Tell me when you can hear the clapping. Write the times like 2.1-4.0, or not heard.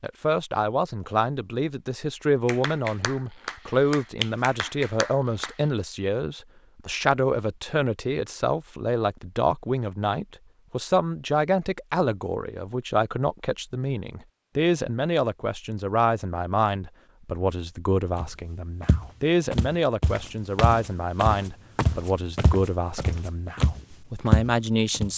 2.5-5.7.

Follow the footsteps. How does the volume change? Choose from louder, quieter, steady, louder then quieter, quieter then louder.
louder.